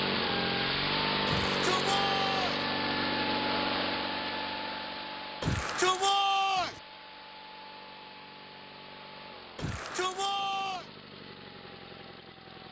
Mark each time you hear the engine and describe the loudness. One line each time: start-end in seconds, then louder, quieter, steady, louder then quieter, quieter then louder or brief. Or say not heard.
0.0-12.6 quieter.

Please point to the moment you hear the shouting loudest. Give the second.
6 s.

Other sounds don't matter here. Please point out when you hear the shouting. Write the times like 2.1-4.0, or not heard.
1.2-2.6, 5.4-6.8, 9.6-10.8.